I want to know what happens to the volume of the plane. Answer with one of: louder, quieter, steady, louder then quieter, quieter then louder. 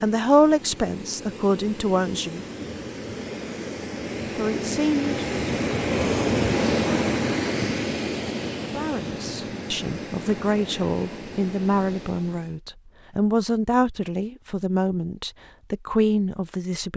louder then quieter.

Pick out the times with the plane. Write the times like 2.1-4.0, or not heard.
0.0-12.6.